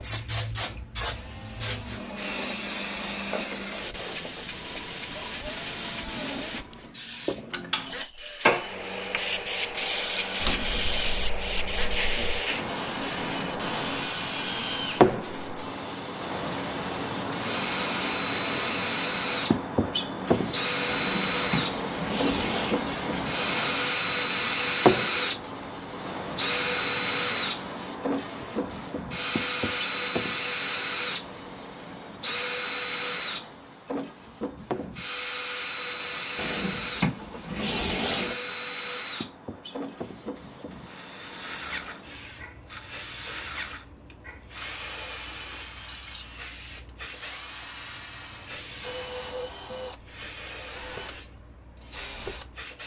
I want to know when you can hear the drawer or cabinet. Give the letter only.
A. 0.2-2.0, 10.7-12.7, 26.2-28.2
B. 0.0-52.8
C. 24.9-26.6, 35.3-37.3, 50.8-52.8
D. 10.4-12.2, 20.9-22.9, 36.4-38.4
D.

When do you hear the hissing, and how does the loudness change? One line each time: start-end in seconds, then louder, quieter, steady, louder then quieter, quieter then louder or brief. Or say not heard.
0.0-52.8 quieter.